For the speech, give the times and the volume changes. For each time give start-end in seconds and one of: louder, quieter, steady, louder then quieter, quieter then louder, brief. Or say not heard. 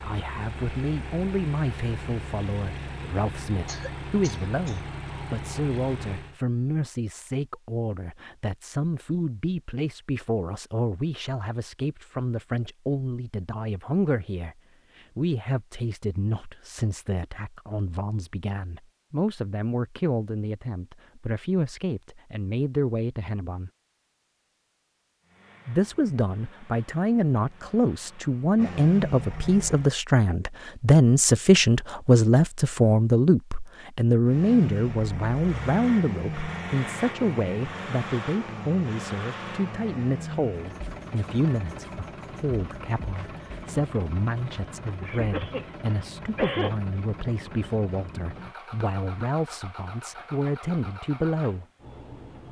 0.0-23.7 steady
25.6-51.6 quieter.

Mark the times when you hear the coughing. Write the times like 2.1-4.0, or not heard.
3.6-4.8, 45.0-46.8.